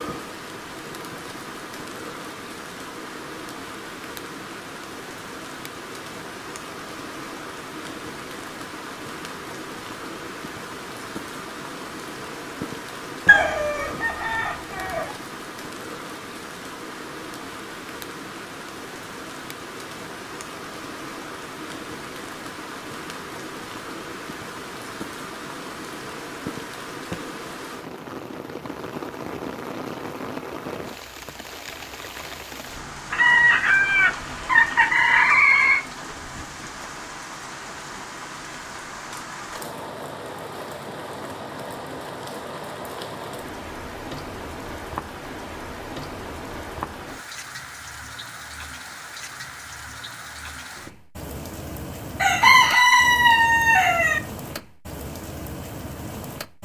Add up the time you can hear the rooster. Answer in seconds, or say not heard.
7 s.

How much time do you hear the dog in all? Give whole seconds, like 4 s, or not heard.
not heard.